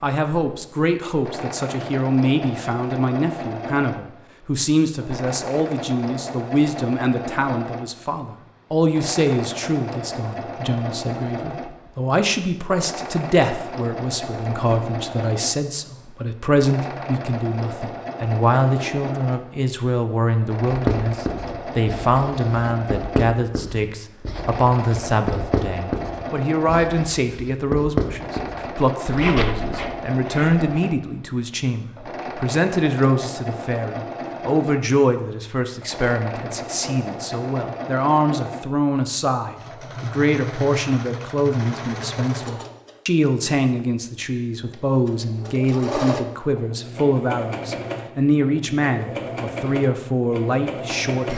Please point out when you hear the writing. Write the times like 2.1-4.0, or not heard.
20.6-30.6.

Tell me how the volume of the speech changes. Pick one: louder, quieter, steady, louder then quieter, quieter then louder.
steady.